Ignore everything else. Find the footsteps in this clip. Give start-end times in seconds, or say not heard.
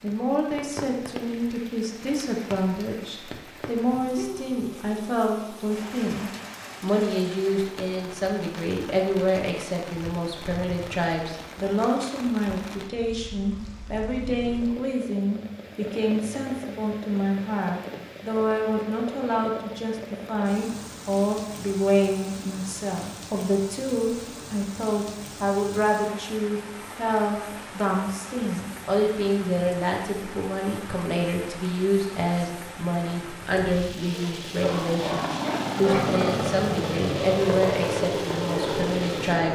not heard.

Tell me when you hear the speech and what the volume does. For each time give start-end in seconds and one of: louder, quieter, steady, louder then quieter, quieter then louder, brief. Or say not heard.
0.0-39.4 steady.